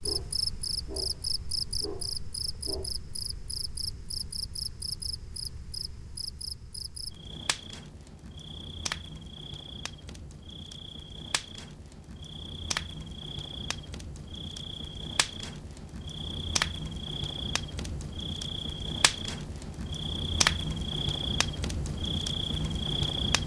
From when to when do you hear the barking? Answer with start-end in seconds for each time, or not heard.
0.0-3.0.